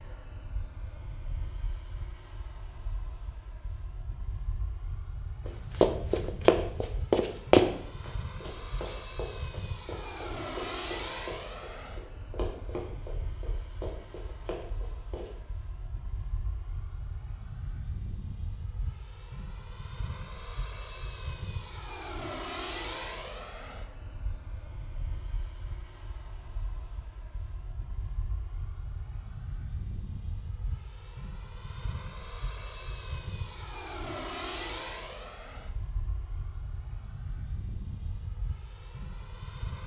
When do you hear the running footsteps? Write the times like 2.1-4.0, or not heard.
5.5-15.3.